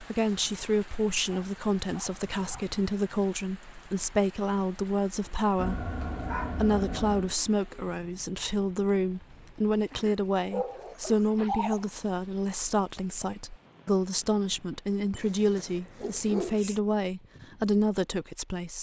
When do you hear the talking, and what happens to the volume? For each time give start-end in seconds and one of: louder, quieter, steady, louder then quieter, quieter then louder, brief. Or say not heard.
0.0-18.7 steady.